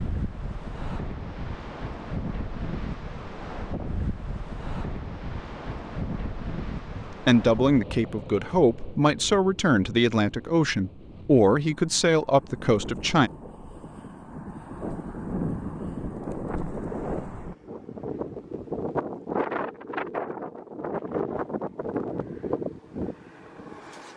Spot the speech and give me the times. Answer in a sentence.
The speech can be heard from 7.0 to 13.3 s.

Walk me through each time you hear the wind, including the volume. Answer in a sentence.
You can hear the wind from 0.0 to 24.1 s, getting quieter then louder.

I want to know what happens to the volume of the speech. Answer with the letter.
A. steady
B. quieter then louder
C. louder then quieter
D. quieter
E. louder
A.